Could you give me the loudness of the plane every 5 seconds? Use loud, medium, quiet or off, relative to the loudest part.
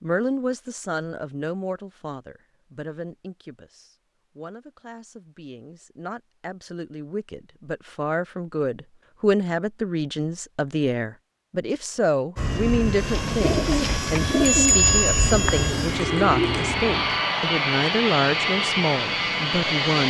off, off, loud, loud.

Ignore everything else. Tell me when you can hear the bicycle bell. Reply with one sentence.
You can hear the bicycle bell from 14.4 to 15.6 s.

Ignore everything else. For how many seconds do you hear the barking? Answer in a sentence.
You can't hear the barking here.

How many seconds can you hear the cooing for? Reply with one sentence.
The cooing can be heard for 4 seconds in total.